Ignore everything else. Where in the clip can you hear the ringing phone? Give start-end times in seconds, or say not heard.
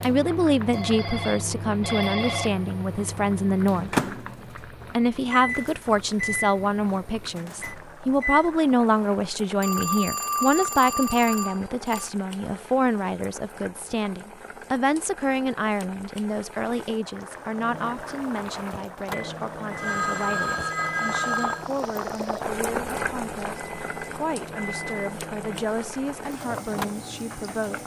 0.7-2.5, 9.6-12.1, 19.8-21.6.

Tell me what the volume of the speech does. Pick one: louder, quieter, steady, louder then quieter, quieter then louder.
quieter.